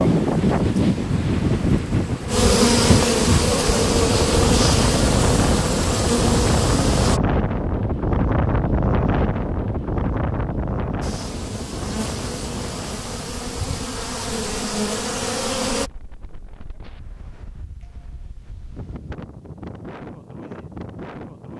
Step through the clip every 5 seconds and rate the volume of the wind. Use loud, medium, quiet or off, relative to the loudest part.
loud, loud, medium, quiet, quiet.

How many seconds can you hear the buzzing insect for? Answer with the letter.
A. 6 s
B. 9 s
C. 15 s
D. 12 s
D.